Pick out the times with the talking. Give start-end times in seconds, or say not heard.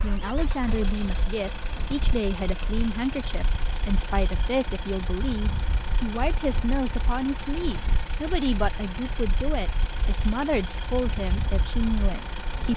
0.0-12.7.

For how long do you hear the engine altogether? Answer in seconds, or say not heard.
13 s.